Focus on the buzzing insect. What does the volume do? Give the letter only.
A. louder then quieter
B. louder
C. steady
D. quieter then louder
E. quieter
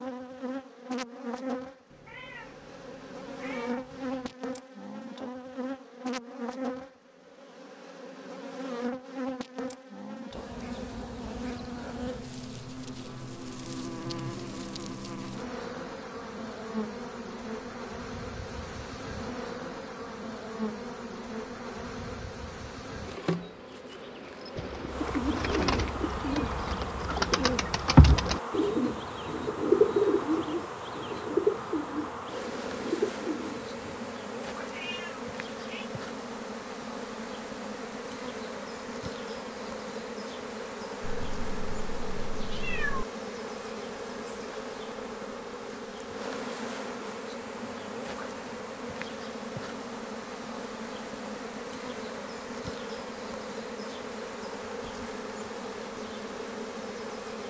C.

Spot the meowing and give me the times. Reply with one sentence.
The meowing can be heard from 1.9 to 4.3 s, from 34.5 to 35.9 s and from 41.0 to 43.0 s.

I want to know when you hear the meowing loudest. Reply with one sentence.
The volume of the meowing peaks at 43 seconds.